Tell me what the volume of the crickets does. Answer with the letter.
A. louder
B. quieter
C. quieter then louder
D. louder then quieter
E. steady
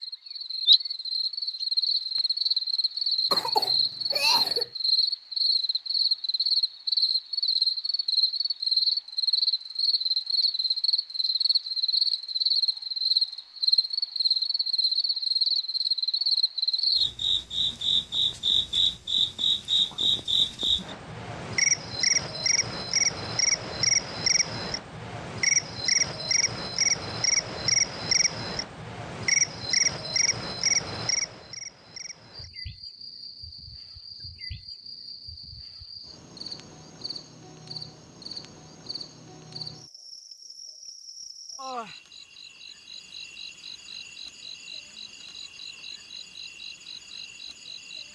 B.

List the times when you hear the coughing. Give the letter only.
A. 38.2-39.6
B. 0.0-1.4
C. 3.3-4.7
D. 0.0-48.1
C.